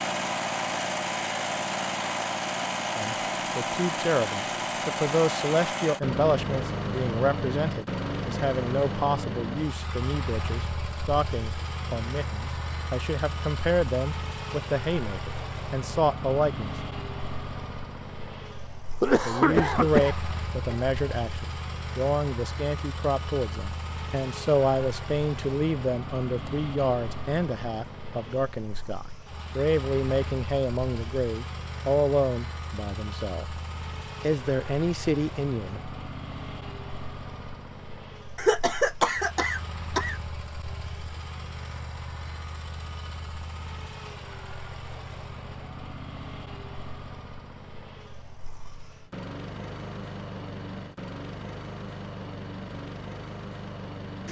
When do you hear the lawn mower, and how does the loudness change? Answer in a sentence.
The lawn mower can be heard from 0.0 to 54.2 s, getting quieter.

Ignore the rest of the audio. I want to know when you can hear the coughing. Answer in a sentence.
You can hear the coughing from 19.0 to 20.9 s and from 38.4 to 40.1 s.